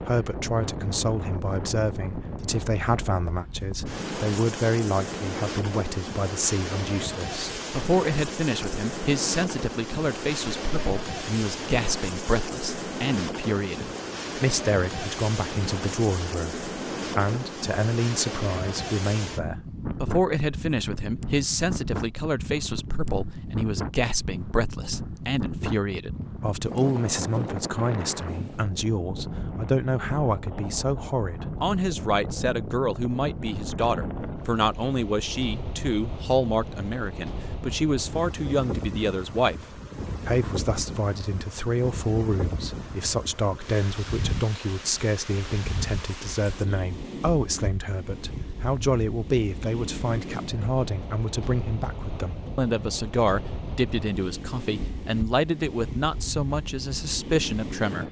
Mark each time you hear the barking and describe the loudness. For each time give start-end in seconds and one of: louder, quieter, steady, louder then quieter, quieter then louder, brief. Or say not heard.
not heard.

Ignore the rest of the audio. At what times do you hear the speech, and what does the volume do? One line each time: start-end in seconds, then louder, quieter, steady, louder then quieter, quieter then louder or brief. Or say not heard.
0.0-58.0 steady.